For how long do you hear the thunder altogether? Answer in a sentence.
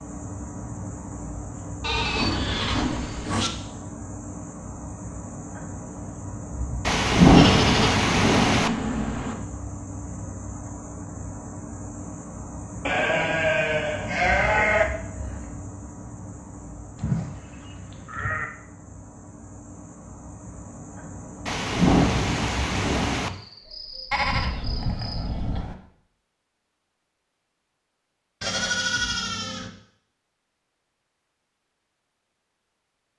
The thunder can be heard for 4 seconds in total.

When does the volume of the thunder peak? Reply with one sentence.
The volume of the thunder peaks at 7 seconds.